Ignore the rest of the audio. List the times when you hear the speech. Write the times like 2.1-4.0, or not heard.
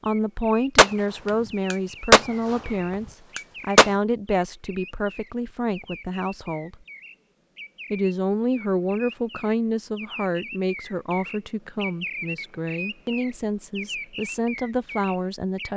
0.0-6.8, 7.9-15.7.